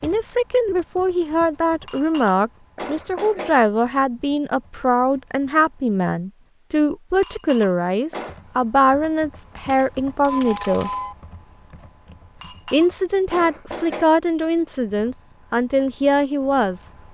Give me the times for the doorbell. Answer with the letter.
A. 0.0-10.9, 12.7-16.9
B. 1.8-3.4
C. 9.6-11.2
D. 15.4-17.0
C.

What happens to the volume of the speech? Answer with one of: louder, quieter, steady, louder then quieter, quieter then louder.
steady.